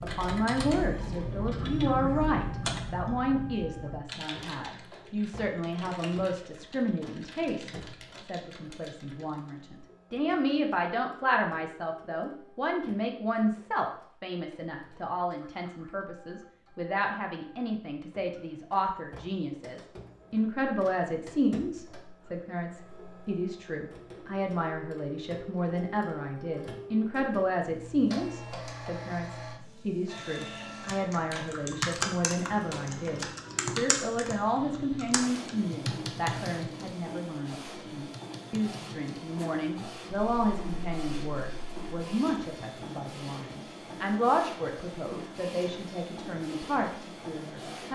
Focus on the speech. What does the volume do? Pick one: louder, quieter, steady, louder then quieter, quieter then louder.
steady.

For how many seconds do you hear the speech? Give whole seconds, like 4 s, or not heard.
48 s.